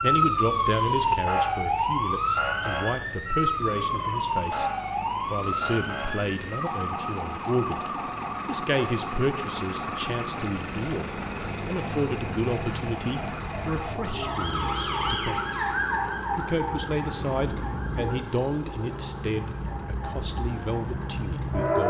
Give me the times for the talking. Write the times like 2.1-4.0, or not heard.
0.0-4.7, 5.3-7.8, 8.4-15.4, 16.4-21.8.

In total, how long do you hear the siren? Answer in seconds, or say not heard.
22 s.